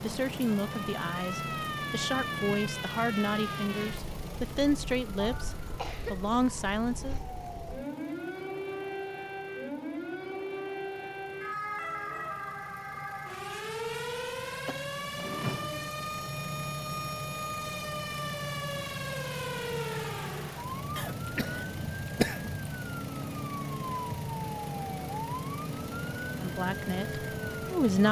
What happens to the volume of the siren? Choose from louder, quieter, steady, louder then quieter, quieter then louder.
steady.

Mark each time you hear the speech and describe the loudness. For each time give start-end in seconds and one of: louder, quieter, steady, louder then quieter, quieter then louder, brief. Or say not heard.
0.0-7.2 steady
26.4-28.0 brief.